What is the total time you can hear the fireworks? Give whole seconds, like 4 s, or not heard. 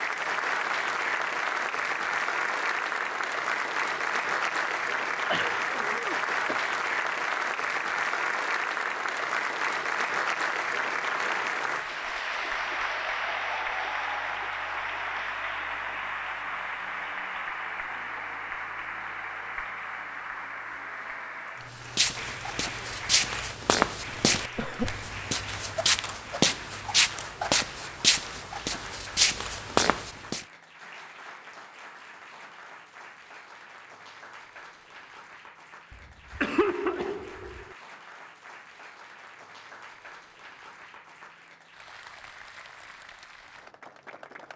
not heard.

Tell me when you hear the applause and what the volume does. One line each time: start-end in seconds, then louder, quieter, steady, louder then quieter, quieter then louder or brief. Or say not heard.
0.0-44.5 quieter.